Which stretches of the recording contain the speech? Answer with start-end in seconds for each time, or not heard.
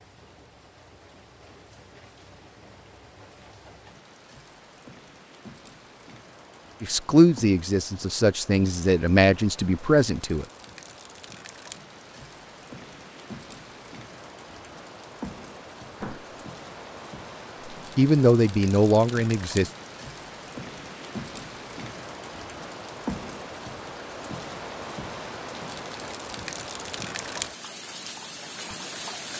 6.8-10.4, 17.9-19.7.